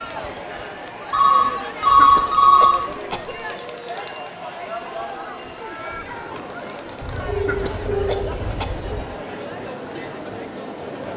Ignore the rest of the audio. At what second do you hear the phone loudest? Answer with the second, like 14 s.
2 s.